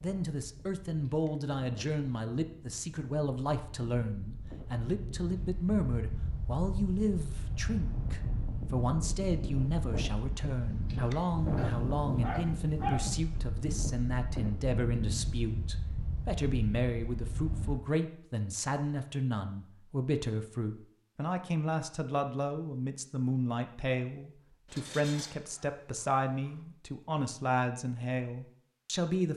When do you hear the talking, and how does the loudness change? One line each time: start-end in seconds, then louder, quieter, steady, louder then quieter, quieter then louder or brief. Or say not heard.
0.0-29.3 steady.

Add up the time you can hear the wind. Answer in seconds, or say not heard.
18 s.